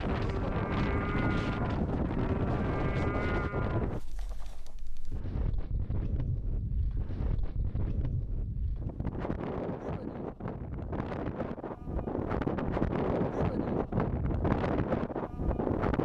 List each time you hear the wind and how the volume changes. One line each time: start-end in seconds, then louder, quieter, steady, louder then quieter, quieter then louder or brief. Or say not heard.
0.0-15.9 quieter then louder.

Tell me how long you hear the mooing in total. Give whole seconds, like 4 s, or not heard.
4 s.